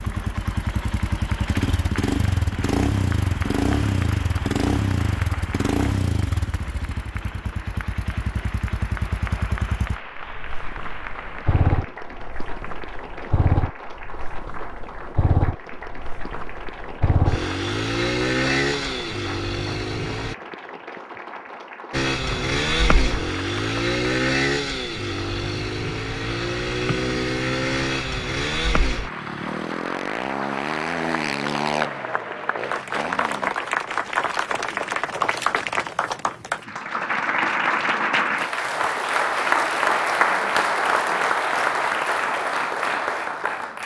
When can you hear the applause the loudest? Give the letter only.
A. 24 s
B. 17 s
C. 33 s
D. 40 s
D.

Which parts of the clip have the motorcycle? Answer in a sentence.
The motorcycle can be heard from 0.0 to 20.4 s and from 21.9 to 33.5 s.